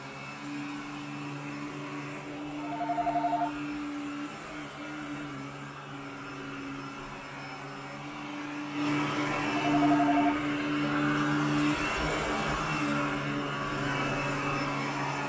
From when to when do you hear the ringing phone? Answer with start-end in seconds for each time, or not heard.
2.5-3.5, 9.7-10.3.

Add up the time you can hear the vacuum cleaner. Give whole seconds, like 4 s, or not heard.
15 s.